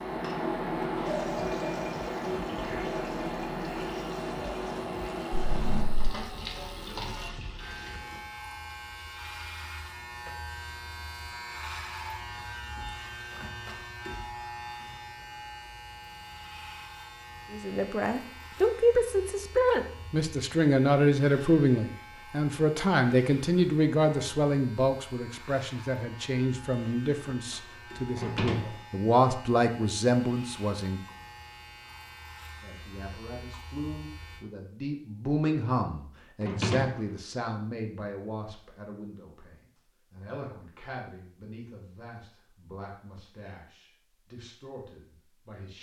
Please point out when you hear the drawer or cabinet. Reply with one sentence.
You can hear the drawer or cabinet from 5.3 to 6.0 s, from 28.1 to 28.6 s and from 36.4 to 36.9 s.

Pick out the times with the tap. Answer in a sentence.
The tap can be heard from 0.0 to 8.2 s.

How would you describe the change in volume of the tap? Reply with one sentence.
The loudness of the tap goes down.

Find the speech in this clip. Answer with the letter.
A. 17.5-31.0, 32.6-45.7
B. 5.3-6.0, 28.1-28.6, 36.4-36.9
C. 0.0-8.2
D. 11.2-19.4
A.